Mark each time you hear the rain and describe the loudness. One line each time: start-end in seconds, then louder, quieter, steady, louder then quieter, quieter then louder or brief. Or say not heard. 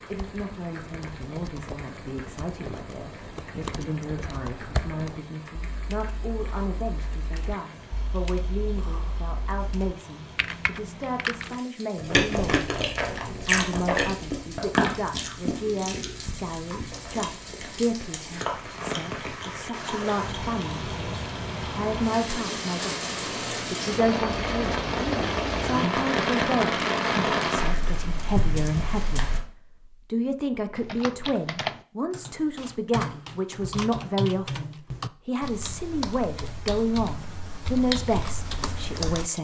0.0-29.4 louder.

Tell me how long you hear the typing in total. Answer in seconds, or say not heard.
20 s.